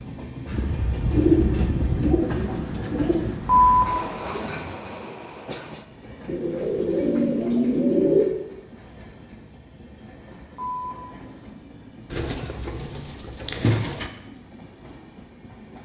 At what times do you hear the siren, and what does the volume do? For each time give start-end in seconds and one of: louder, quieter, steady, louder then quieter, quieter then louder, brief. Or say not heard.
not heard.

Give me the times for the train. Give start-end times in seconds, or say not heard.
0.0-15.8.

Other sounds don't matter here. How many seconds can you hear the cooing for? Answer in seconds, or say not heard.
6 s.